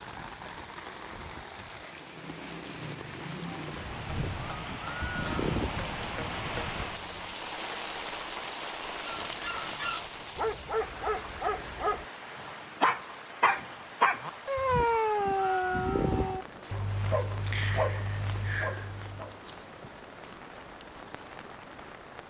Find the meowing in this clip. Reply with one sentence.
You can hear the meowing from 4.0 to 5.8 s and from 14.6 to 16.4 s.